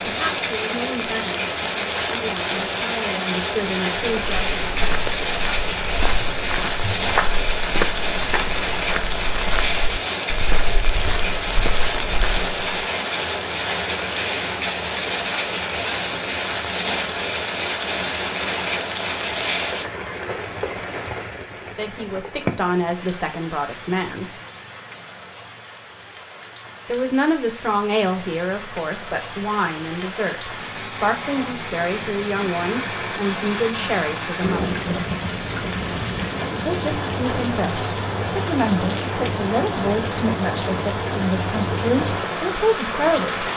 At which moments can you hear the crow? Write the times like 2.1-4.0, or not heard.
not heard.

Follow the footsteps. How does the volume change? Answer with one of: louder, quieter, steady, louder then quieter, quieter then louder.
louder then quieter.